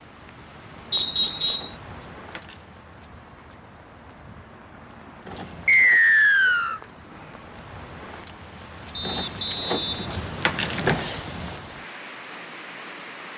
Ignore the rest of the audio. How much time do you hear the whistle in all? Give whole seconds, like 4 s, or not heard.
4 s.